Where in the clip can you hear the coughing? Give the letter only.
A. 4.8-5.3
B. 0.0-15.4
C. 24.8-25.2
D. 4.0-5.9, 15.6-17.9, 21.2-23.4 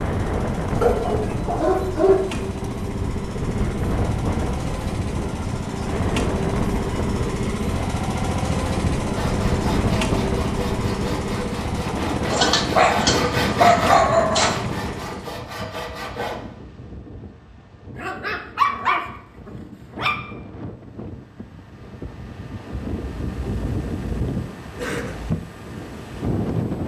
C.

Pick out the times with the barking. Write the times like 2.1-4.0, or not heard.
0.8-2.6, 12.3-14.6, 17.9-20.2.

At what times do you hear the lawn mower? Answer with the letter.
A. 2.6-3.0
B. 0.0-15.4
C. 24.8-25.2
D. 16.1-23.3
B.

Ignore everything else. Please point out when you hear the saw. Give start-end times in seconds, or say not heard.
9.2-16.4.